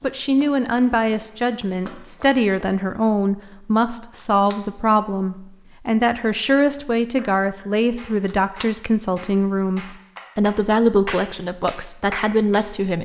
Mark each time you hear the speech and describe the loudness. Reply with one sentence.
The speech can be heard from 0.0 to 13.0 s, at a steady volume.